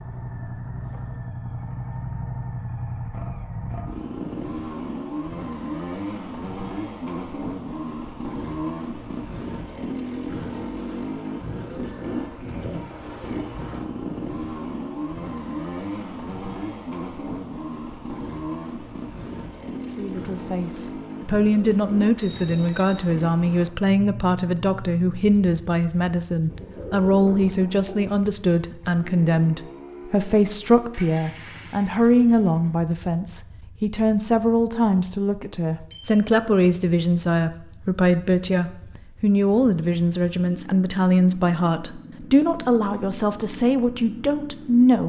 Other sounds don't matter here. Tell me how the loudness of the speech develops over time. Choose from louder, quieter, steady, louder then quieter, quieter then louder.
steady.